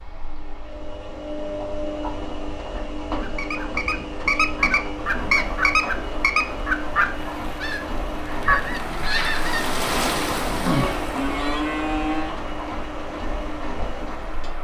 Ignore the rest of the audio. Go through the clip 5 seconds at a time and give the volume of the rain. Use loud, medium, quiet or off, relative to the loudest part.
off, loud, loud.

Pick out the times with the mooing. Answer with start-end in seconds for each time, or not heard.
10.9-12.4.